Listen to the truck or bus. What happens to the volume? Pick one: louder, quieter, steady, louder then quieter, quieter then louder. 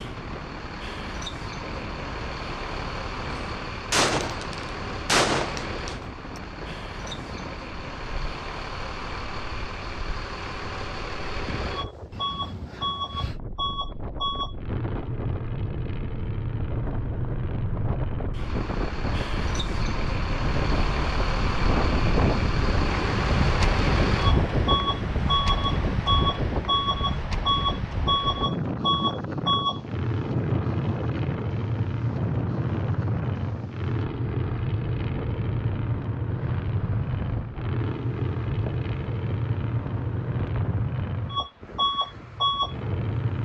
louder.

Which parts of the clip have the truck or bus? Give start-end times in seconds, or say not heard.
0.0-43.3.